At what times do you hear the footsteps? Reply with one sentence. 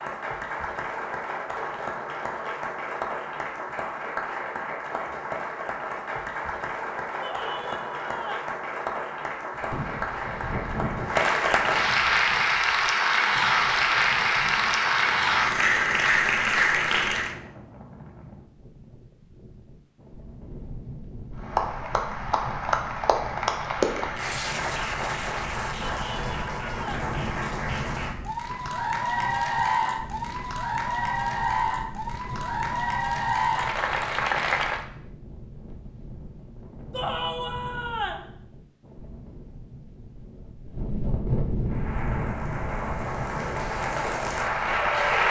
The footsteps can't be heard in this clip.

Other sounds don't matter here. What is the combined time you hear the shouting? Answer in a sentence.
You can hear the shouting for 4 seconds altogether.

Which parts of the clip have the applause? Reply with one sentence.
You can hear the applause from 0.0 to 17.4 s, from 21.4 to 34.9 s and from 41.6 to 45.2 s.